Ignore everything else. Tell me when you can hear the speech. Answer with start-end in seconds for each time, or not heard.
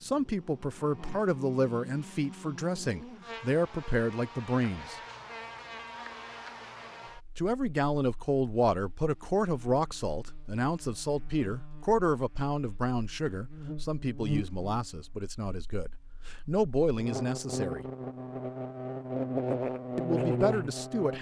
0.0-5.0, 7.3-17.9, 19.9-21.1.